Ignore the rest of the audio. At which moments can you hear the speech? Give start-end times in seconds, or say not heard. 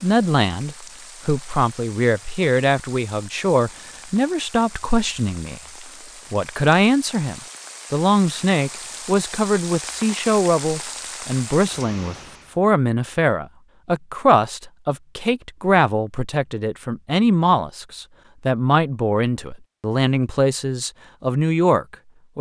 0.0-5.6, 6.3-22.3.